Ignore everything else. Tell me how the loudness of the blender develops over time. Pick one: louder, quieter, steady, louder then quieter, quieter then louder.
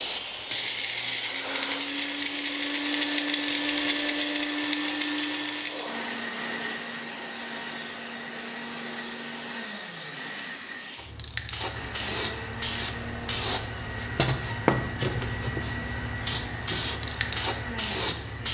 quieter.